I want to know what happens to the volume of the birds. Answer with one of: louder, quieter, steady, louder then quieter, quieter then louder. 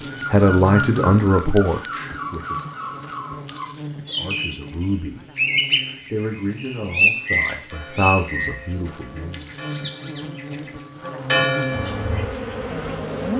louder then quieter.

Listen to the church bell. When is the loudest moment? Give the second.
11 s.